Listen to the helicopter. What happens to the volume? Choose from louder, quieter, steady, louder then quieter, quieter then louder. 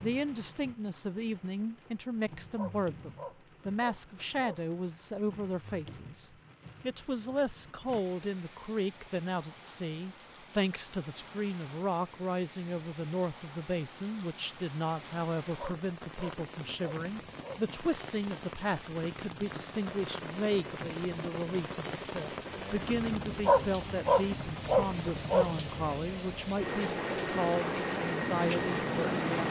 louder.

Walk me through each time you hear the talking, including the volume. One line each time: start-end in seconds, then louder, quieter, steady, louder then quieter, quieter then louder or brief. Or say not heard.
0.0-29.4 steady.